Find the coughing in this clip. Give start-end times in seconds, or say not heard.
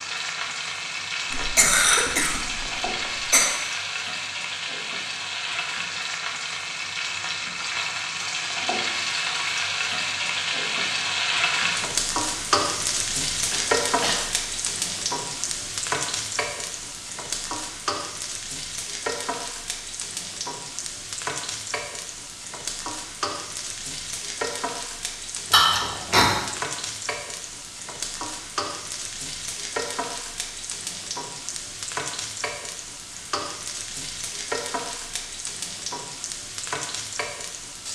1.3-3.5, 13.5-14.2, 25.5-26.4.